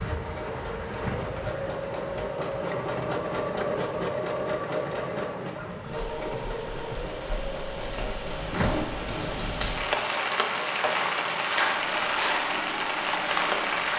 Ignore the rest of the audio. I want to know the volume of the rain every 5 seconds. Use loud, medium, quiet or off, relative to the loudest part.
quiet, medium, loud.